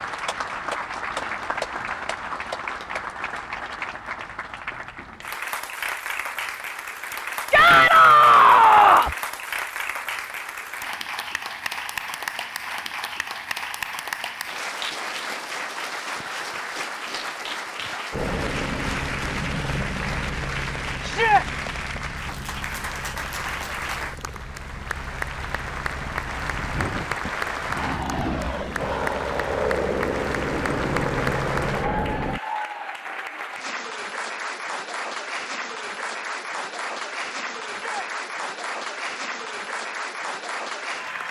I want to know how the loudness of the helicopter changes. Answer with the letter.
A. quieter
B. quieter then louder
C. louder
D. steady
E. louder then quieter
B.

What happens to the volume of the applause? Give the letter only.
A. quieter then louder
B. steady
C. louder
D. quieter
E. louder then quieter
B.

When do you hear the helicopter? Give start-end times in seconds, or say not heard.
18.1-32.4.